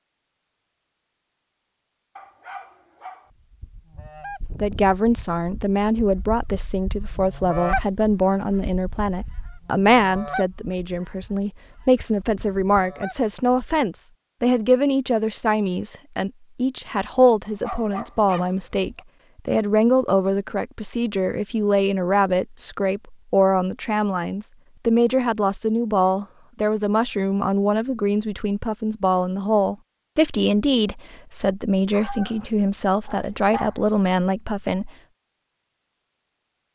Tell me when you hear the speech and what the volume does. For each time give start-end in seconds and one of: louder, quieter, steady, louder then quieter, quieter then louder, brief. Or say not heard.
4.6-34.9 steady.